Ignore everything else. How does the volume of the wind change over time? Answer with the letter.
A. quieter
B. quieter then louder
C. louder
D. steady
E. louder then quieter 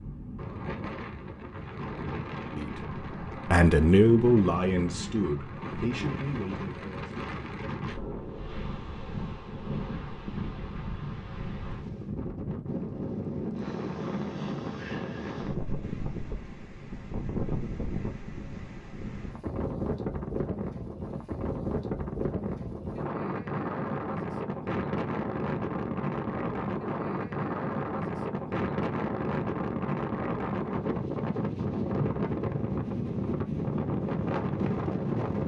C.